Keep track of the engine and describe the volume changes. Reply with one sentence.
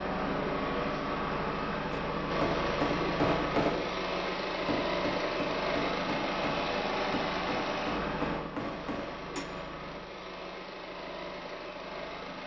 The loudness of the engine goes down.